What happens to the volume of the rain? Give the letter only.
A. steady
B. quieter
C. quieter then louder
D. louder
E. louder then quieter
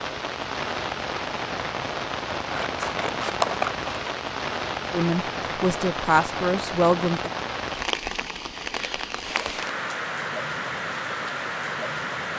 A.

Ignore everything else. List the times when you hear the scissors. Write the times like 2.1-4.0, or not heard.
2.5-4.2.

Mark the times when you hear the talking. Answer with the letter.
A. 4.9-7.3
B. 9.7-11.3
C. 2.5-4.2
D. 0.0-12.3
A.